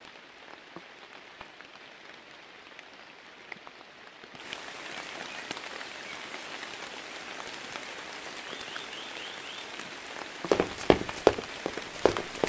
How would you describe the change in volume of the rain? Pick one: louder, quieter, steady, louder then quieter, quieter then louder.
louder.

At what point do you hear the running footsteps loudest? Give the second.
11 s.